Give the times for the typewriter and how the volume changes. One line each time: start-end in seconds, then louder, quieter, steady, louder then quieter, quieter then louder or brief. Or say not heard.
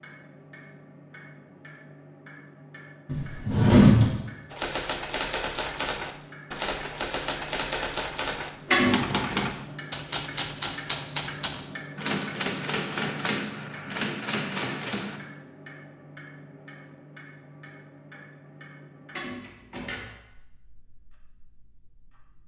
4.5-15.2 steady.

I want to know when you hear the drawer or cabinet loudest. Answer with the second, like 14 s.
4 s.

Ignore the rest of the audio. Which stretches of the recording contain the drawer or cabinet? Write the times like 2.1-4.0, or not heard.
3.0-4.1, 8.7-9.3, 19.1-20.1.